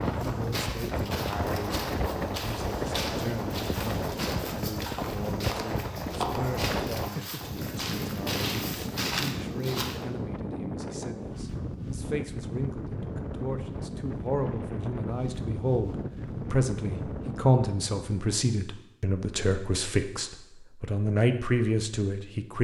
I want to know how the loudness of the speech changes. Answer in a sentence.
The volume of the speech goes up.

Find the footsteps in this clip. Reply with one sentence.
The footsteps can be heard from 0.0 to 10.0 s.